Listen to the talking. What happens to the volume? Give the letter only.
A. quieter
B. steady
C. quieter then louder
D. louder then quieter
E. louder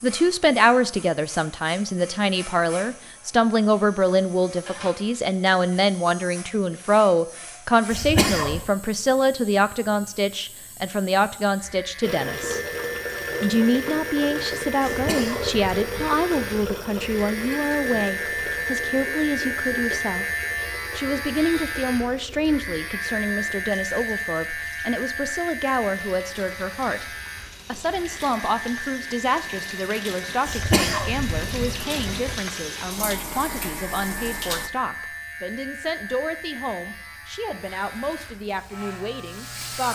A.